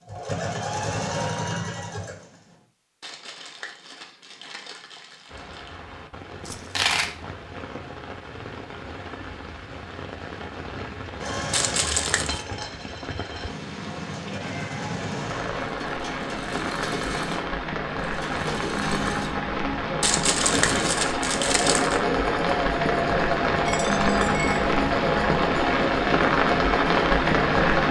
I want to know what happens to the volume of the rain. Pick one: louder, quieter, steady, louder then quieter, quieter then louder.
louder.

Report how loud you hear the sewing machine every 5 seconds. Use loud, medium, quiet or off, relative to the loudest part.
loud, off, medium, medium, loud, loud.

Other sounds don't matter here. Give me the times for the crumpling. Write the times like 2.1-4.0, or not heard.
3.0-5.8, 11.5-12.4, 20.0-22.0.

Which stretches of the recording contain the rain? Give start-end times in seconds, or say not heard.
5.2-27.8.